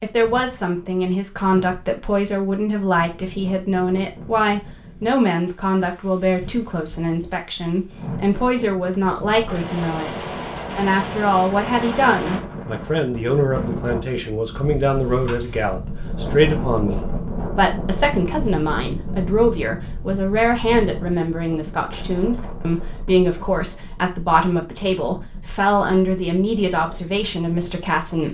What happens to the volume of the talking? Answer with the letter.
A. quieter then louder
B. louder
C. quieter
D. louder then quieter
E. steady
E.